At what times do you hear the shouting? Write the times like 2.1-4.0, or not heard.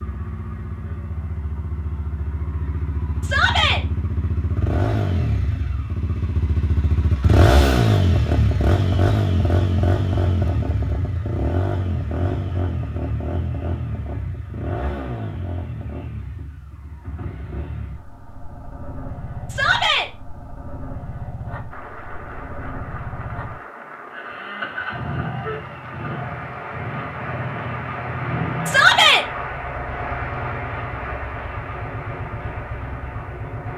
3.2-3.8, 19.4-20.1, 28.6-29.2.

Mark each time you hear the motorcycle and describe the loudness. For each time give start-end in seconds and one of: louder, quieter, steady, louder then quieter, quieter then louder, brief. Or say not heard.
0.0-33.7 louder then quieter.